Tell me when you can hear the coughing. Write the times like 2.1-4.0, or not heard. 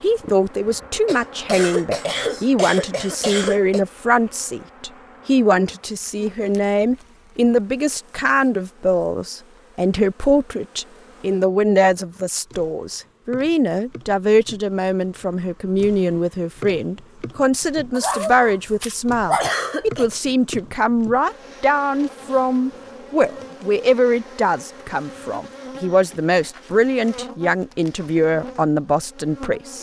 1.1-3.8, 19.4-20.1.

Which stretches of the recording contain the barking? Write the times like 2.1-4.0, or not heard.
17.9-19.5.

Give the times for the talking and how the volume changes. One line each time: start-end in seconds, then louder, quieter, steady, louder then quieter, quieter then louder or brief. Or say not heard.
0.0-29.7 steady.